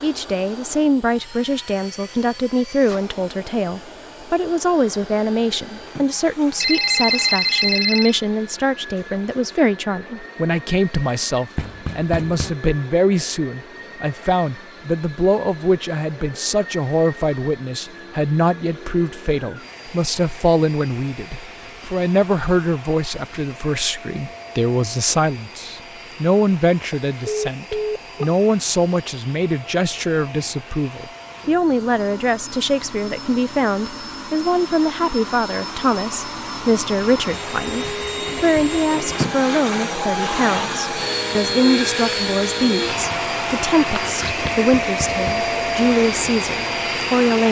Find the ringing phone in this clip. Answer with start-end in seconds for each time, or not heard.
6.6-8.2, 26.7-28.4, 44.0-44.5.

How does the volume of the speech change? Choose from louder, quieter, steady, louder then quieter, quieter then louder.
steady.